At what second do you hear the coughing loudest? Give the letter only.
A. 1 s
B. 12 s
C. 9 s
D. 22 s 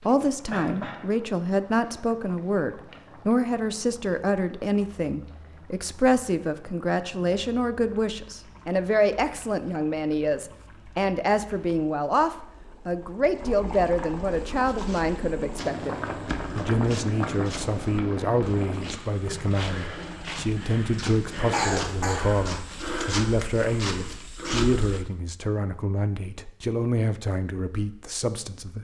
D.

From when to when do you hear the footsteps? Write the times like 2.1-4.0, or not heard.
14.5-25.1.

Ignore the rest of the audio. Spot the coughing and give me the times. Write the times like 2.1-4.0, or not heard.
0.5-1.0, 21.5-22.3.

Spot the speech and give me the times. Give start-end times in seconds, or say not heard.
0.0-28.7.